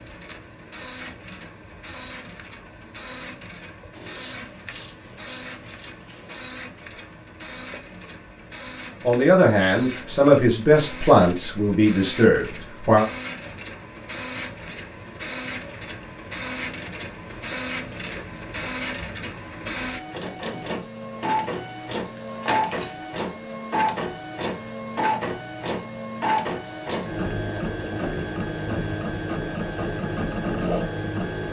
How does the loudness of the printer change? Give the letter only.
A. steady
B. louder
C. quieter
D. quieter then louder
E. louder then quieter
B.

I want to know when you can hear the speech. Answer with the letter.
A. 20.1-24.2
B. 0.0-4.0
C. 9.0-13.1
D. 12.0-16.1
C.